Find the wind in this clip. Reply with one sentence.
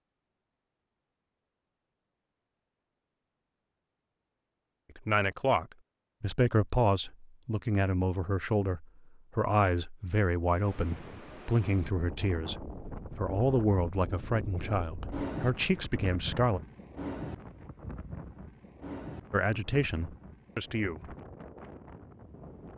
You can hear the wind from 10.5 to 22.7 s.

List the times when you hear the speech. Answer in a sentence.
You can hear the speech from 5.0 to 16.6 s and from 19.3 to 21.1 s.